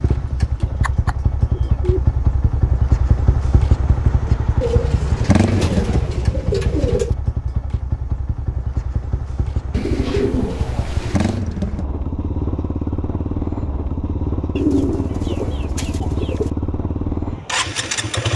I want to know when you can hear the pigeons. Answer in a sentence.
The pigeons can be heard from 0.6 to 2.6 s, from 4.6 to 7.2 s, from 9.7 to 11.4 s and from 14.6 to 16.5 s.